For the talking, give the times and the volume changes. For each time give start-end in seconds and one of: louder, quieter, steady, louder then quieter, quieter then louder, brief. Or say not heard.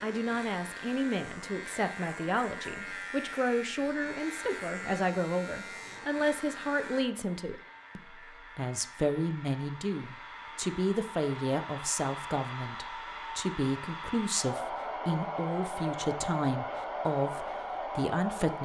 0.0-18.6 steady.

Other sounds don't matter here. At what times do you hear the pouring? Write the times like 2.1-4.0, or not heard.
not heard.